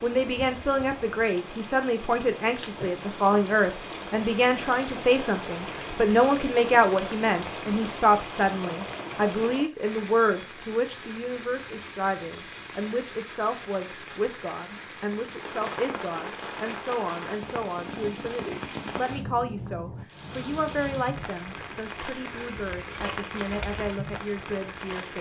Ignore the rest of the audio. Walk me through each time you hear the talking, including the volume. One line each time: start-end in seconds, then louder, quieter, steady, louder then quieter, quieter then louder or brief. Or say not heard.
0.0-25.1 quieter.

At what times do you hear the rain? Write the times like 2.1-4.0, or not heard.
0.0-25.1.